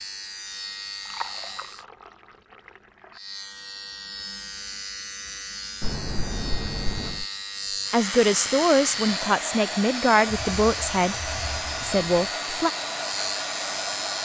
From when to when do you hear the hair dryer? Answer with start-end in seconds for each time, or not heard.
7.8-14.2.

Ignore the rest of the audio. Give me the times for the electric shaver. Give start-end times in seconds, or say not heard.
0.0-1.9, 3.1-14.2.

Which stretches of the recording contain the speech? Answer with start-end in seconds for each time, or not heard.
7.9-12.7.